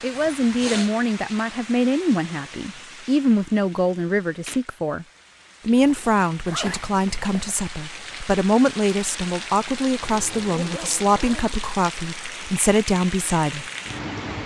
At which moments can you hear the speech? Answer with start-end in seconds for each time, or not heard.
0.0-5.0, 5.7-13.7.